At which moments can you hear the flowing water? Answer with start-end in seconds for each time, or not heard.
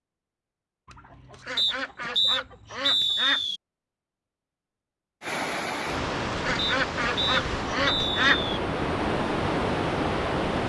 5.2-10.6.